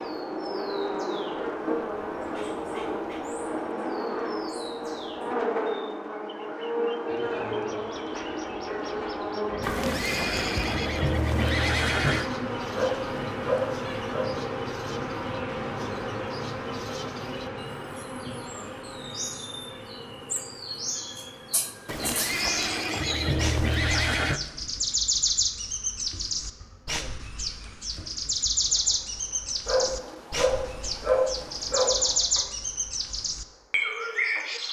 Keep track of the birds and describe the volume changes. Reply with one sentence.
The loudness of the birds goes up.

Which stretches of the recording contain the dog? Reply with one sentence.
You can hear the dog from 12.8 to 14.3 s and from 29.6 to 32.2 s.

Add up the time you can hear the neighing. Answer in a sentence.
The neighing can be heard for 5 seconds in total.